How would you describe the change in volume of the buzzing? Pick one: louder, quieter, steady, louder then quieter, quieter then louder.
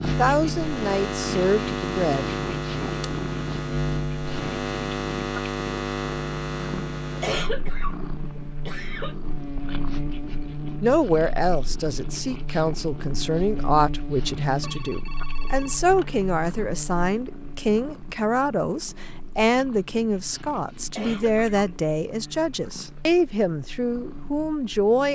quieter.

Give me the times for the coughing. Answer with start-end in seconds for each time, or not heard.
7.2-9.2, 20.9-21.4.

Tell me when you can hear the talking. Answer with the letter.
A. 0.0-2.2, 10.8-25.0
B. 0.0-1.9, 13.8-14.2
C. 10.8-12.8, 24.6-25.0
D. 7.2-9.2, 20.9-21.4
A.